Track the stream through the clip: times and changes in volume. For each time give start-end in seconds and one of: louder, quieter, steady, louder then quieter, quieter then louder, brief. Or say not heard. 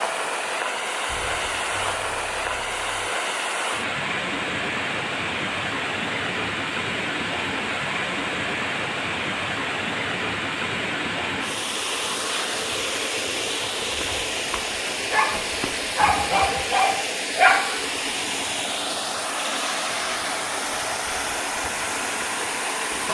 0.0-23.0 steady.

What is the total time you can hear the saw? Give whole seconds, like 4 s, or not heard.
not heard.